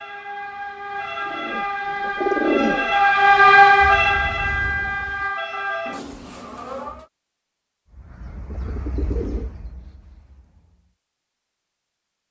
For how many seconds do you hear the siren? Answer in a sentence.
The siren can be heard for 7 seconds in total.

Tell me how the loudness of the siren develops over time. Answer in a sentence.
The loudness of the siren goes up, then down.